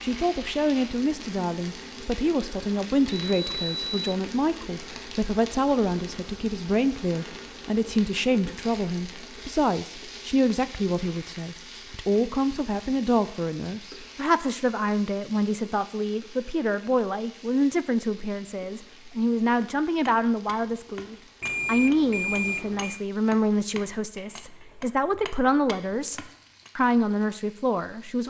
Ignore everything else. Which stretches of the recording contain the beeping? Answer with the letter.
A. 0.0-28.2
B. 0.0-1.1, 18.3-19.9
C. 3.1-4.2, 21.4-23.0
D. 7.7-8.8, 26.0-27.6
C.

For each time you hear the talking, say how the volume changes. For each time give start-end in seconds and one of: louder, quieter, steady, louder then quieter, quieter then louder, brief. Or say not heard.
0.0-28.2 steady.